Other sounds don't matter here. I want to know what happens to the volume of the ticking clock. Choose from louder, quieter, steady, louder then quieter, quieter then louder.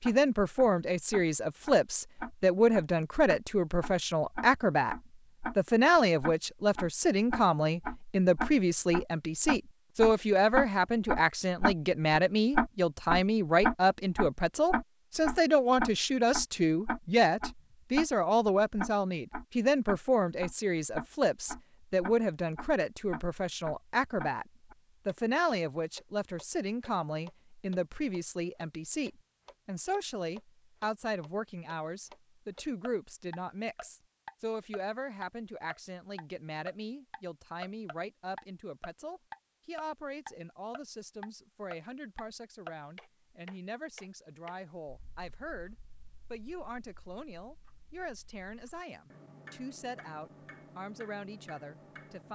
quieter.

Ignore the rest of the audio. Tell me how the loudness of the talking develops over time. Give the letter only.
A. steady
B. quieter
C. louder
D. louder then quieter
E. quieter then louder
B.